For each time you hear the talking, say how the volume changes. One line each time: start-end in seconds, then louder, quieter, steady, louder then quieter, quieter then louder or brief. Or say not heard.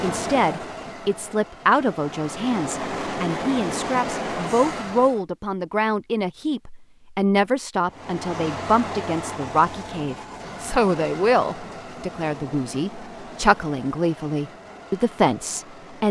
0.0-16.0 steady.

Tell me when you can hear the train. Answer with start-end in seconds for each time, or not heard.
0.0-5.2, 7.8-16.0.